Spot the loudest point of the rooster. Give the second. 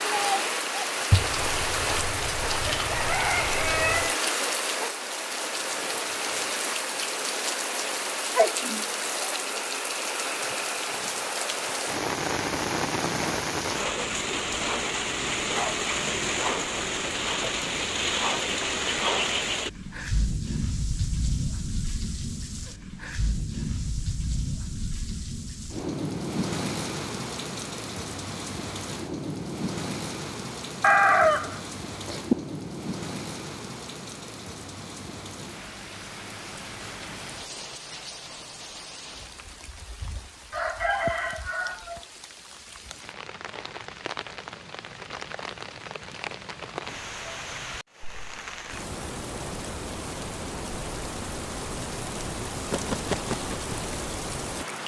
31 s.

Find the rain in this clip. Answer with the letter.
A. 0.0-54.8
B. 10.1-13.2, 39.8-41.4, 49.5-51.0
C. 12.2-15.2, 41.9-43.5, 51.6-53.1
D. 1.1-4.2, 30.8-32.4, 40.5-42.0
A.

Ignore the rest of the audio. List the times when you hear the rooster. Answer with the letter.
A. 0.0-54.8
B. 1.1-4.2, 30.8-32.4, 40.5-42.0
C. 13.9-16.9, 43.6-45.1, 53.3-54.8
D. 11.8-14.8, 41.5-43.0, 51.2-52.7
B.